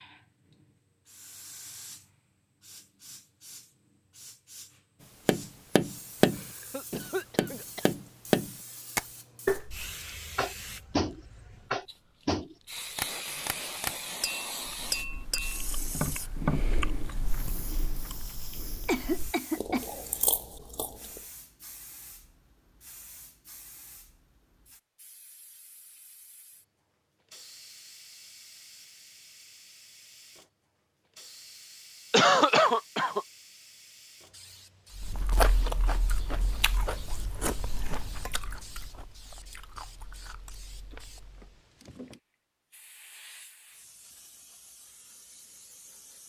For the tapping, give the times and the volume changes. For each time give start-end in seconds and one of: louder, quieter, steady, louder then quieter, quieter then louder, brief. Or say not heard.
5.2-16.6 quieter.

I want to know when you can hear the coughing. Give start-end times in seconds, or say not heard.
6.3-7.9, 18.9-19.9, 32.1-33.2.